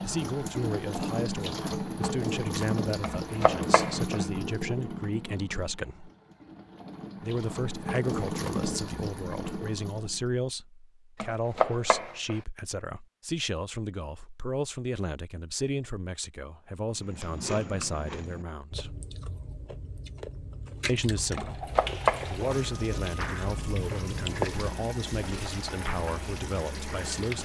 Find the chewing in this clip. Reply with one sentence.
The chewing can be heard from 16.9 to 25.6 s.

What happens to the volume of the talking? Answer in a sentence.
The loudness of the talking stays about the same.